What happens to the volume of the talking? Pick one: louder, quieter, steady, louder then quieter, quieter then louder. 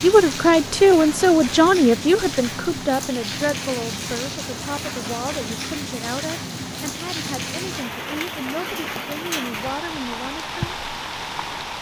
quieter.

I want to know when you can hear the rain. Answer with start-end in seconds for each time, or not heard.
0.0-11.7.